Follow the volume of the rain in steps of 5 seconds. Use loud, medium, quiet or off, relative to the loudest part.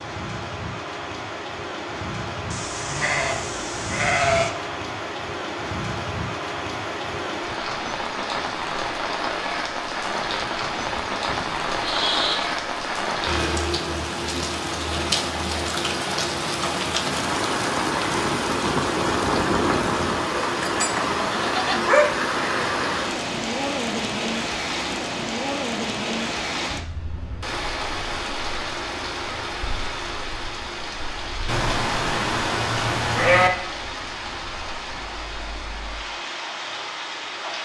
medium, medium, loud, loud, loud, medium, medium, medium.